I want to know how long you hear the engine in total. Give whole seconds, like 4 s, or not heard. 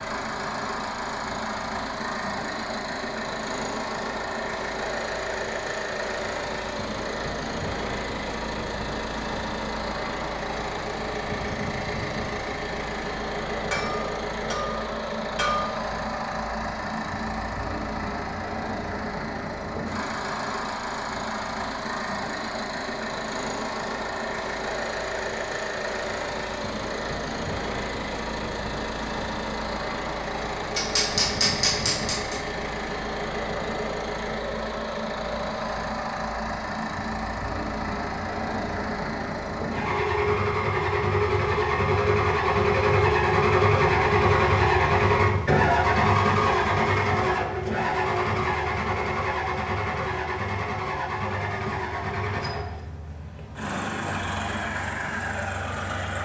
56 s.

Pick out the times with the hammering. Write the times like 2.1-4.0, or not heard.
13.7-15.7, 30.8-32.4.